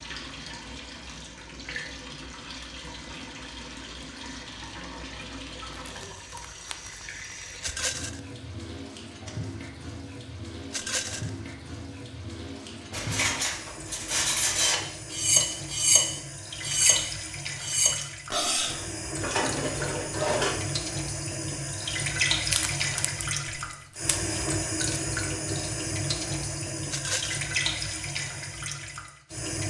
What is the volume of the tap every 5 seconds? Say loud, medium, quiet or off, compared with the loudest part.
medium, medium, medium, medium, loud, loud.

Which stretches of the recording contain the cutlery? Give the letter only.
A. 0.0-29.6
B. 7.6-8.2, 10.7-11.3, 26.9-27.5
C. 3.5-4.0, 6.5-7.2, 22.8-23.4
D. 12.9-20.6
D.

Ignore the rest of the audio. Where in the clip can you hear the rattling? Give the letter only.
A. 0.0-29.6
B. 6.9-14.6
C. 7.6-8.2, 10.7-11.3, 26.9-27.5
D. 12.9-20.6
C.